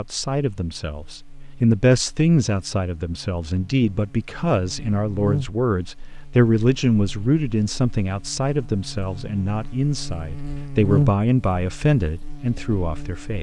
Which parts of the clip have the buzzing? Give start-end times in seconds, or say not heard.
0.0-13.3.